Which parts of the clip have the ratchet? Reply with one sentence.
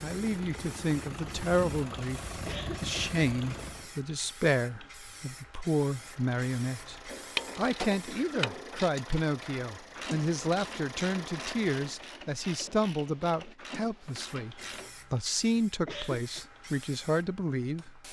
The ratchet can be heard from 7.0 to 14.9 s.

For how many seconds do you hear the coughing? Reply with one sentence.
You can hear the coughing for 2 seconds altogether.